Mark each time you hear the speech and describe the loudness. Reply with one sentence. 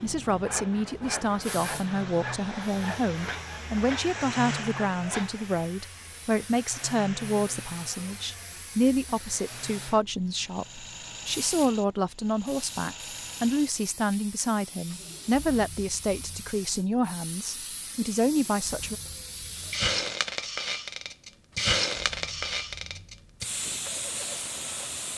You can hear the speech from 0.0 to 18.9 s, at a steady volume.